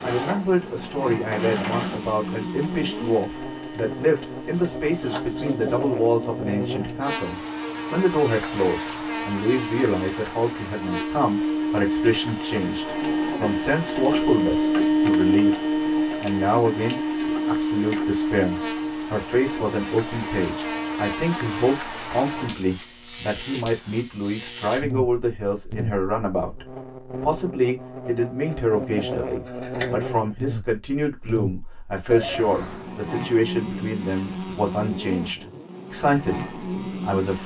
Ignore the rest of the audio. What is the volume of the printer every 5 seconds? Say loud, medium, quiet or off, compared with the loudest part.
medium, medium, loud, loud, medium, off, off, off.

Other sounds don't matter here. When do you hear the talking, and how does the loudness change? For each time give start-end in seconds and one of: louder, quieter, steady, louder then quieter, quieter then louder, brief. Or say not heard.
0.0-15.6 steady
16.2-37.4 steady.